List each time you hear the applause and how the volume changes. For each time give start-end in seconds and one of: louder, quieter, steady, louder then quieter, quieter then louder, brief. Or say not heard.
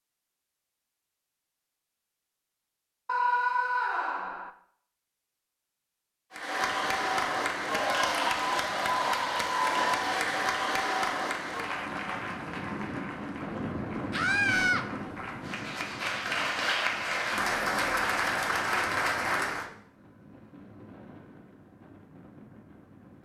6.3-19.7 quieter then louder.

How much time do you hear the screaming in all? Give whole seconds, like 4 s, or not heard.
2 s.